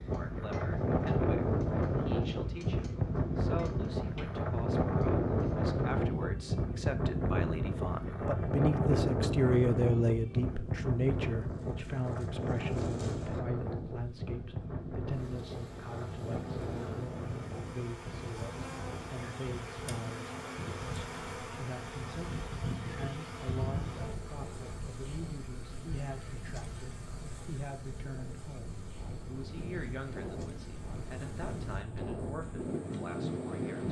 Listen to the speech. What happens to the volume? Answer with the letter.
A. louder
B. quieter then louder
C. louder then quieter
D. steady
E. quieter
C.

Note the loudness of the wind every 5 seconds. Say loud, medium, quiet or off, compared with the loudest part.
loud, loud, medium, medium, quiet, quiet, medium.